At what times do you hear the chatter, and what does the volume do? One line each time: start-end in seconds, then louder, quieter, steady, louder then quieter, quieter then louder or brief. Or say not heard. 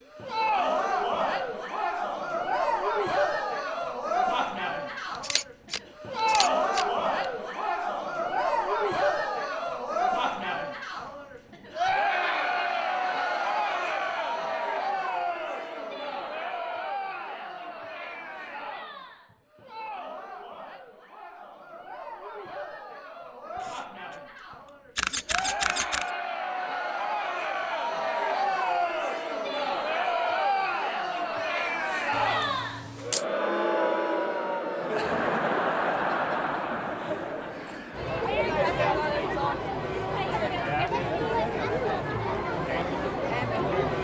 0.1-44.0 quieter then louder.